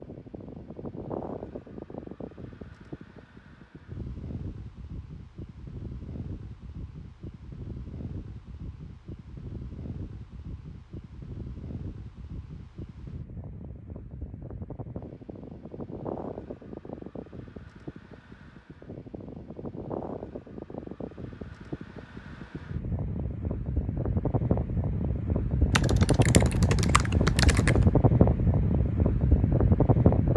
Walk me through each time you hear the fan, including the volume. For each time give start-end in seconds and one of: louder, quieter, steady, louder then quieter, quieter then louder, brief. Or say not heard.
0.0-30.3 louder.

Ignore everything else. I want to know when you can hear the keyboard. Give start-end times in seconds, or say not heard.
25.8-27.9.